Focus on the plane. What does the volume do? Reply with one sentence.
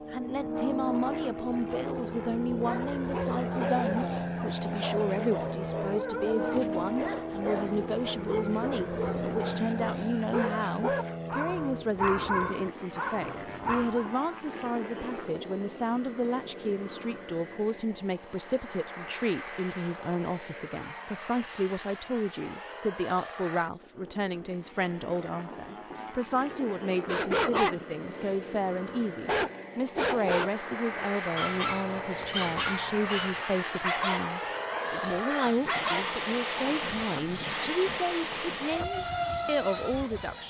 The loudness of the plane goes down, then up.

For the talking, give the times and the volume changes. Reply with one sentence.
The talking can be heard from 0.1 to 40.4 s, at a steady volume.